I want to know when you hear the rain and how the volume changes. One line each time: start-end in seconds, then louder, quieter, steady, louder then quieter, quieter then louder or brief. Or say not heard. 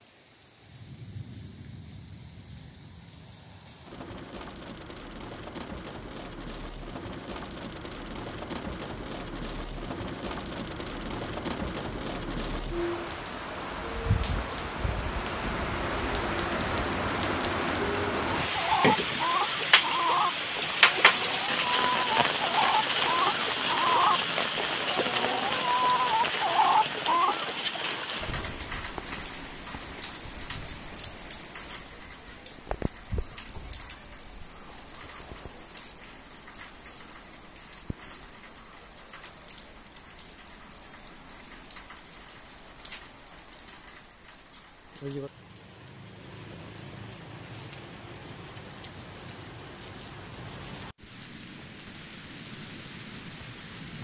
0.0-54.0 louder then quieter.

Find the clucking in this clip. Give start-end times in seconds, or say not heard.
18.4-27.5.